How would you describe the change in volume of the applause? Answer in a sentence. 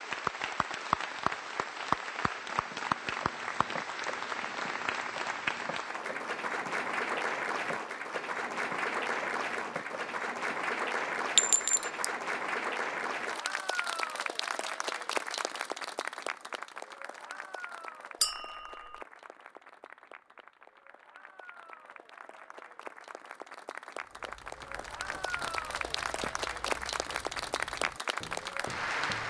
The volume of the applause goes down, then up.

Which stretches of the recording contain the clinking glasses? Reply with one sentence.
You can hear the clinking glasses from 11.3 to 12.1 s and from 18.2 to 19.0 s.